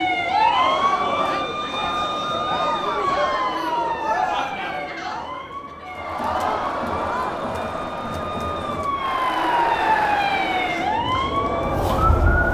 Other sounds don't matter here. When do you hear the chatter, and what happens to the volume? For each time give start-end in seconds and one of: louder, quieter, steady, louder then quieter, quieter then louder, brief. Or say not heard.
0.1-12.4 steady.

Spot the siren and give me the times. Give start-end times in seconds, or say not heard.
0.0-12.4.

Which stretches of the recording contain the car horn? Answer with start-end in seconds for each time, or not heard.
not heard.